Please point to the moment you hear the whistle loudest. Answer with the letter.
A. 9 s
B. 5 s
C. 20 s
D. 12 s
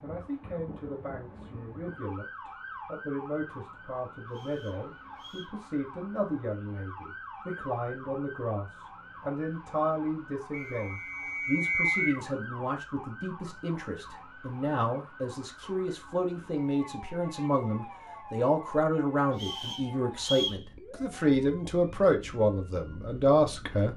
D.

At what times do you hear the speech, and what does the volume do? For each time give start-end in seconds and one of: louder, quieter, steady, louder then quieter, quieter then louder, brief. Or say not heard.
0.0-23.9 louder.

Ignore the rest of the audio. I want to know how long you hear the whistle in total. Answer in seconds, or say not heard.
4 s.